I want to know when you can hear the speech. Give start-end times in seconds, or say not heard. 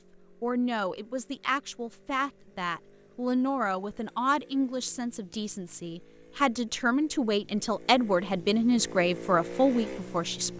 0.4-10.5.